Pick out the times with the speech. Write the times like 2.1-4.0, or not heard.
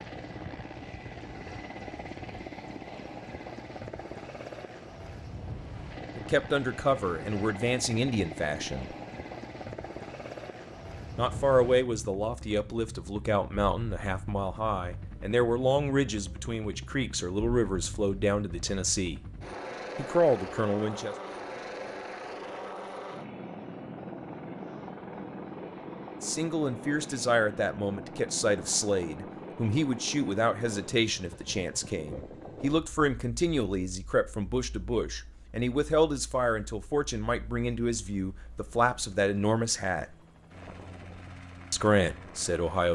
6.2-8.9, 11.2-19.2, 19.9-21.1, 26.2-40.0, 41.7-42.8.